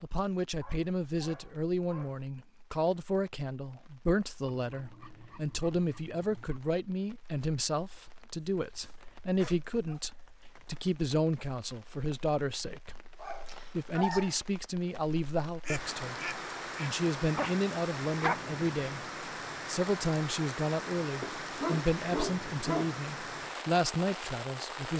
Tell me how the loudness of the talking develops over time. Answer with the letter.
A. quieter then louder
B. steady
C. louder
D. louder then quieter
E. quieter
B.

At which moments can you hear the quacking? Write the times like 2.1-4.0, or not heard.
15.6-16.9.